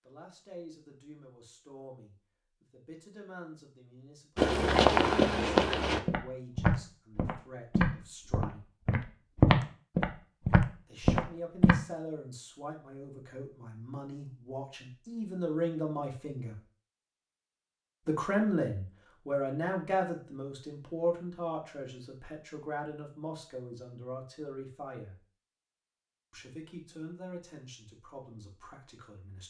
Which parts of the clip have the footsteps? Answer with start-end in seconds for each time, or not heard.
4.3-11.8.